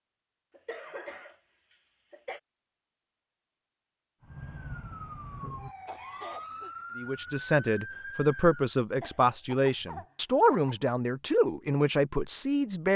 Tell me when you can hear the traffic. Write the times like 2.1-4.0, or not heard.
not heard.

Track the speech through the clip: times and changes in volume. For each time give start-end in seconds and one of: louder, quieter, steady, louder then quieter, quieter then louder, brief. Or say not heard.
7.0-12.9 steady.